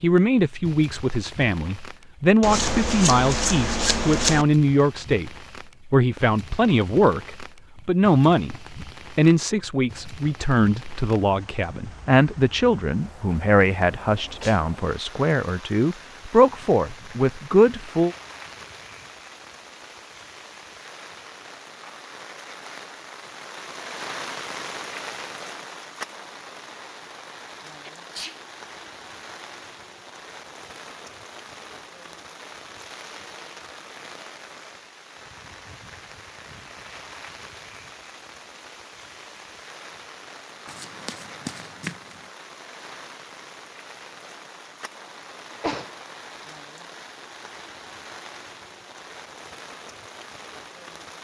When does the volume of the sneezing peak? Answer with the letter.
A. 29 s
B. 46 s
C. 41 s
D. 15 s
B.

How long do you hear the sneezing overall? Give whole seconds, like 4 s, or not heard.
2 s.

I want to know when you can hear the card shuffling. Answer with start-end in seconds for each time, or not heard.
2.4-4.5, 40.6-42.2.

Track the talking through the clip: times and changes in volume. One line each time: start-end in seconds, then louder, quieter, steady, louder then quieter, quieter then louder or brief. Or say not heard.
0.0-18.1 steady.